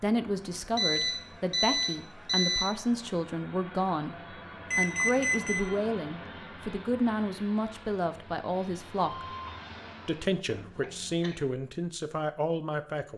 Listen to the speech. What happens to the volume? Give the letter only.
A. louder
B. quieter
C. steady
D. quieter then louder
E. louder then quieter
C.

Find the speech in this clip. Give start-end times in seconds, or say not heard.
0.0-4.2, 4.8-9.2, 10.1-13.1.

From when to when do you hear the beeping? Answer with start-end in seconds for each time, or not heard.
0.8-2.6, 4.7-5.6, 9.2-9.7.